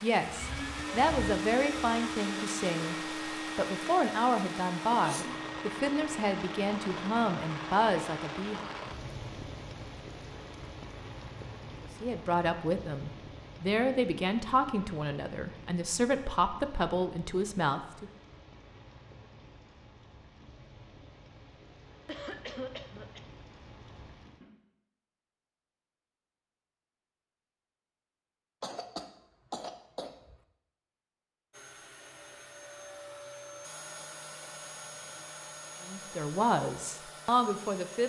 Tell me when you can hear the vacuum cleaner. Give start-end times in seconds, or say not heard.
0.1-8.6, 31.5-38.0.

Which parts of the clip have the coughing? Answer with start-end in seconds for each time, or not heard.
4.9-5.5, 22.1-23.2, 28.6-30.4.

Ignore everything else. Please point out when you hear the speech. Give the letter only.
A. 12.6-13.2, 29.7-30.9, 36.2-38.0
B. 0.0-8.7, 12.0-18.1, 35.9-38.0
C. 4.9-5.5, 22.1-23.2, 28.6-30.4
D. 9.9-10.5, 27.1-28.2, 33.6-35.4
B.